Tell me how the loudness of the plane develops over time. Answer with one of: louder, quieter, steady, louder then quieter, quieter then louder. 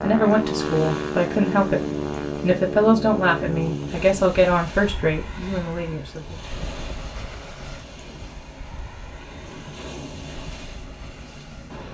quieter.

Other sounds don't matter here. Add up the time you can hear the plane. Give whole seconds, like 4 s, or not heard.
12 s.